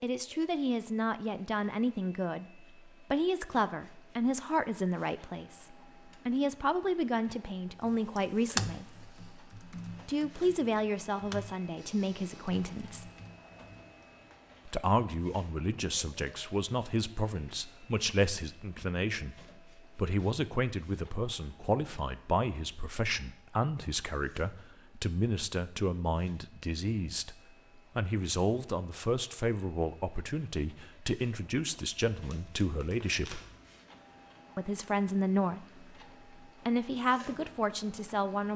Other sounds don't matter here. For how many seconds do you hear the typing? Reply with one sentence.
The typing can be heard for 6 seconds in total.